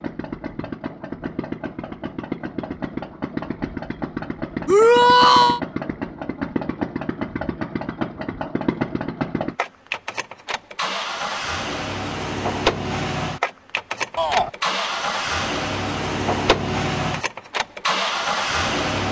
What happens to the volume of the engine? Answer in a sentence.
The volume of the engine goes up.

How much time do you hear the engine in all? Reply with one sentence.
You can hear the engine for 19 seconds altogether.